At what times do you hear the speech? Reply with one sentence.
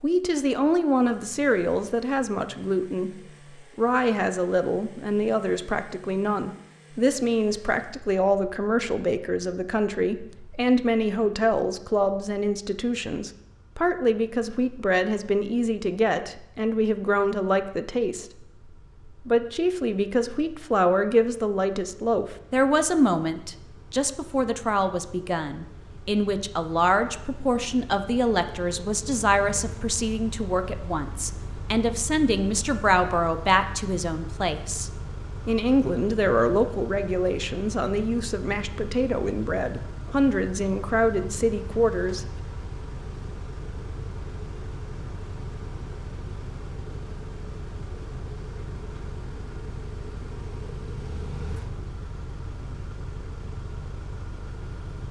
You can hear the speech from 0.0 to 3.1 s, from 3.8 to 18.4 s and from 19.2 to 42.2 s.